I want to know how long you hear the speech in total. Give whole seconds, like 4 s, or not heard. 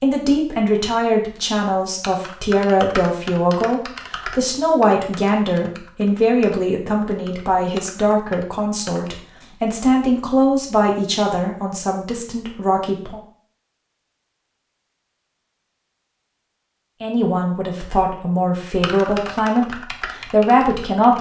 17 s.